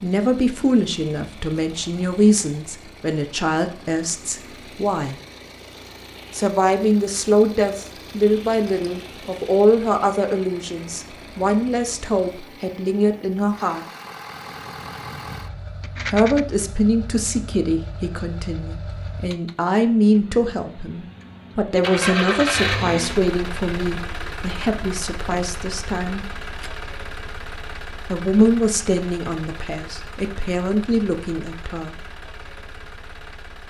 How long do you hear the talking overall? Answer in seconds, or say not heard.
27 s.